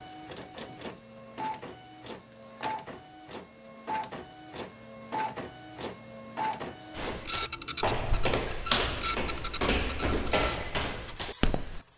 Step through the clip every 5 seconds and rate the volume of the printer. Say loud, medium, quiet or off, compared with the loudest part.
medium, loud, medium.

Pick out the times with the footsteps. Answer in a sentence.
The footsteps can be heard from 7.0 to 11.8 s.